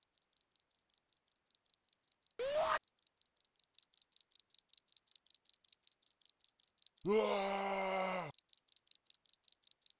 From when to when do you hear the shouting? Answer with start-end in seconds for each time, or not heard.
2.4-2.8, 7.0-8.3.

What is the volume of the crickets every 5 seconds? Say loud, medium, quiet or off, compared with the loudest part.
medium, loud.